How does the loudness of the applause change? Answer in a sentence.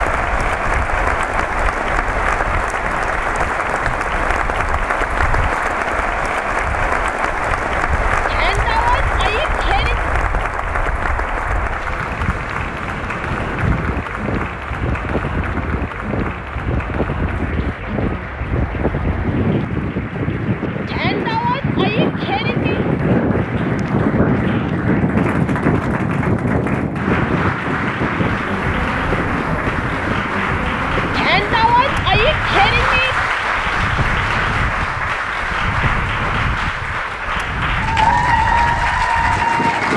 The volume of the applause goes down, then up.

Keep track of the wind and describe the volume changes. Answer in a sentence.
The volume of the wind goes up, then down.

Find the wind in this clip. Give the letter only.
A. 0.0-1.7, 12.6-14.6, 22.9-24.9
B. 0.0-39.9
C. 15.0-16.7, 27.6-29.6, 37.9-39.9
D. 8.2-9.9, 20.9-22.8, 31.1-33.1
B.